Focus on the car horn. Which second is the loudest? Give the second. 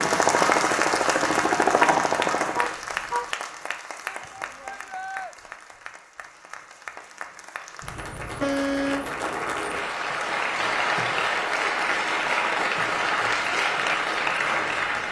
9 s.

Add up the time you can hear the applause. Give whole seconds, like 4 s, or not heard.
15 s.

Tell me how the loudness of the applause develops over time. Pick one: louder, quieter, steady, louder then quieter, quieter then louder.
quieter then louder.